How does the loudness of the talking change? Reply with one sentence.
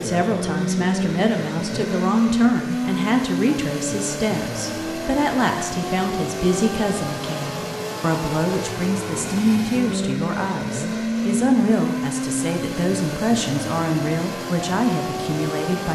The loudness of the talking stays about the same.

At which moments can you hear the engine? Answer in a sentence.
The engine can be heard from 0.0 to 15.9 s.